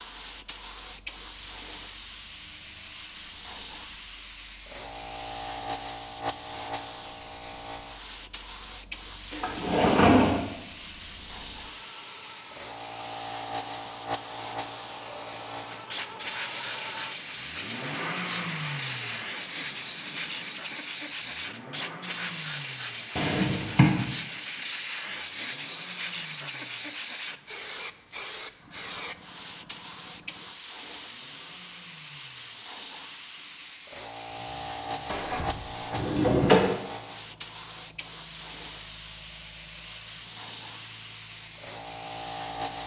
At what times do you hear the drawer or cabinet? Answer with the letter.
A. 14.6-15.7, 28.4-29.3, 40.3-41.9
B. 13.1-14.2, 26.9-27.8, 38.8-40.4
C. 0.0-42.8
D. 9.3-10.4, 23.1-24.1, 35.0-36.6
D.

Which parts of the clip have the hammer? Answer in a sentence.
The hammer can't be heard in this clip.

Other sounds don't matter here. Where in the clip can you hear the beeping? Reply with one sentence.
The beeping can't be heard in this clip.